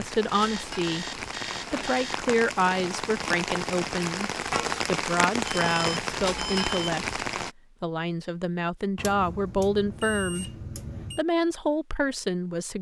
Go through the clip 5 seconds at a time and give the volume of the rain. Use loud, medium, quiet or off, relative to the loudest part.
loud, loud, off.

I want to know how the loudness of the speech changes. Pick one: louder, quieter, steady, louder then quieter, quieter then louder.
steady.